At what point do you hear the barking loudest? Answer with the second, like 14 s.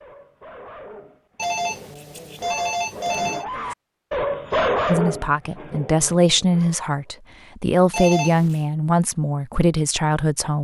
5 s.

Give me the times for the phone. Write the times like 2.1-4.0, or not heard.
1.4-3.5, 7.9-8.6.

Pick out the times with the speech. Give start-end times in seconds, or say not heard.
4.8-10.5.